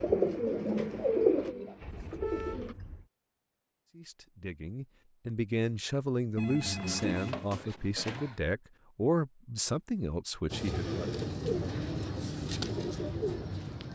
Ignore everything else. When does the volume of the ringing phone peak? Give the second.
7 s.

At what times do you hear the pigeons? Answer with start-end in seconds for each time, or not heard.
0.0-2.8, 10.5-13.8.